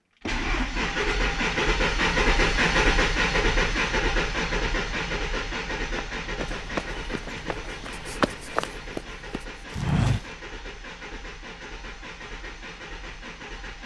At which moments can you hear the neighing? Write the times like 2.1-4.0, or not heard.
not heard.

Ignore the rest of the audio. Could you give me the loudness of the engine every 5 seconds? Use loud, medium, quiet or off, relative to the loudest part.
loud, medium, quiet.